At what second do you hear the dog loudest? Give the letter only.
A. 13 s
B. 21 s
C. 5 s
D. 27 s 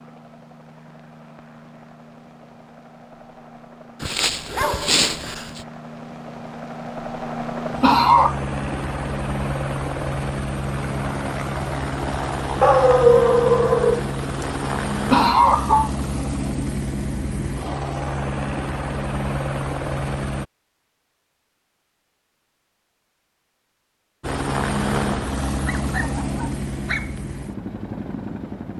A.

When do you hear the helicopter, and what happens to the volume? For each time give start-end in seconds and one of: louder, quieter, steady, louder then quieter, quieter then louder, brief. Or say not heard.
0.0-20.4 louder
24.2-28.7 quieter.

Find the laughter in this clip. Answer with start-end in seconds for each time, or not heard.
7.8-8.3, 15.1-15.9.